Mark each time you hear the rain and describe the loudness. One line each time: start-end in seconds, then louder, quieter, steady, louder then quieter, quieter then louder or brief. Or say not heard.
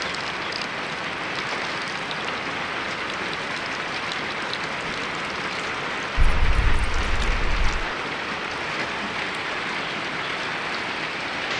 0.0-11.5 steady.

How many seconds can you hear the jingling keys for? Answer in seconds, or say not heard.
2 s.